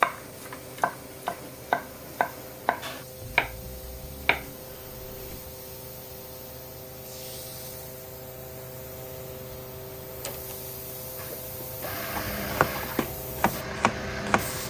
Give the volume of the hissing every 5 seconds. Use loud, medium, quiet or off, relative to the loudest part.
medium, loud, loud.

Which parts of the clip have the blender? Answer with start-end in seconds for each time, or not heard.
11.2-14.6.